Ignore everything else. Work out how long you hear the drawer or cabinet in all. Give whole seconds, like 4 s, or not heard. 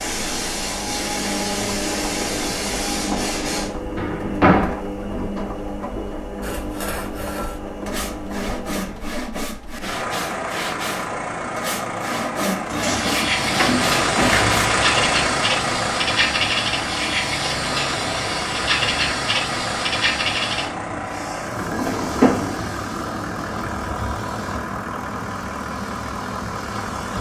3 s.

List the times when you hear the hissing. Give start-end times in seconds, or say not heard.
0.0-3.7, 12.7-27.1.